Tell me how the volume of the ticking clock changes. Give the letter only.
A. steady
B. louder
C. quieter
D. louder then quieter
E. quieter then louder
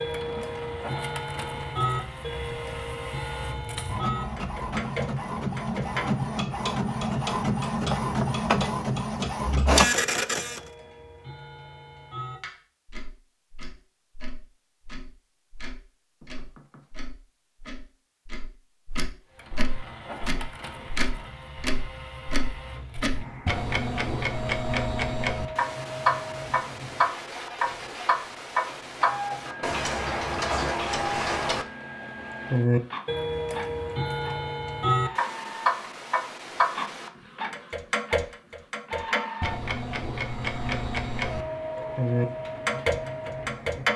E.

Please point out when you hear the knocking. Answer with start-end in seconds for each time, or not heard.
16.2-16.9.